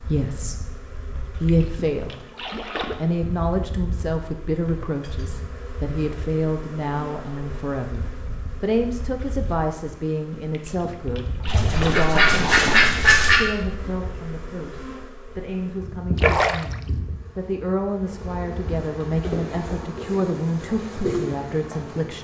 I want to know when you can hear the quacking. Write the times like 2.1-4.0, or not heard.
11.4-13.4.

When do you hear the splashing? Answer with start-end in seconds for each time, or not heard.
1.4-3.0, 10.5-13.1, 16.1-16.9.